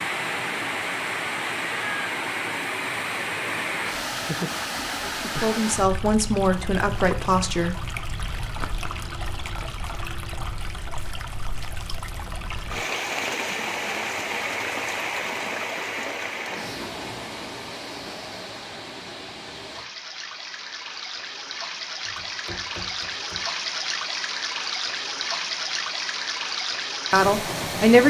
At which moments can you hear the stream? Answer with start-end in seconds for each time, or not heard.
0.0-28.0.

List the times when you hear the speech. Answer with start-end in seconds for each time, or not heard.
5.0-7.8, 27.1-28.0.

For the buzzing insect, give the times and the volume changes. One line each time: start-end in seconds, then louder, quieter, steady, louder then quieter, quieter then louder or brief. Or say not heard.
not heard.